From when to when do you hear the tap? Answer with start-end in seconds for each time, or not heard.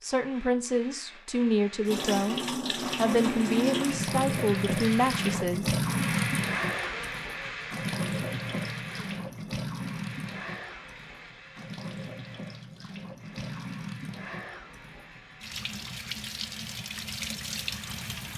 1.9-18.3.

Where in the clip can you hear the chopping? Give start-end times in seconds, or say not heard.
not heard.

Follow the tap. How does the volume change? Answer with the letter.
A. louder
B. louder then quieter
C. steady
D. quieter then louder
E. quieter
E.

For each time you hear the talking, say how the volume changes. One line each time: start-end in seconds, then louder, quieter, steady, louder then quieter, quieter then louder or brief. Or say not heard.
0.0-5.8 steady.